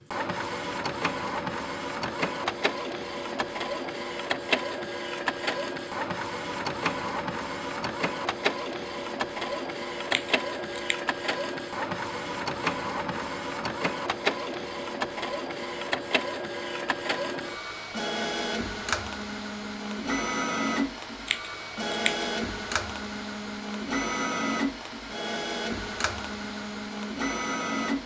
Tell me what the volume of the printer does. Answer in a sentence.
The loudness of the printer stays about the same.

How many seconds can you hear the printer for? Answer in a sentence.
You can hear the printer for 28 seconds altogether.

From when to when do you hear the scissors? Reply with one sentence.
You can hear the scissors from 10.1 to 10.9 s and from 21.2 to 22.2 s.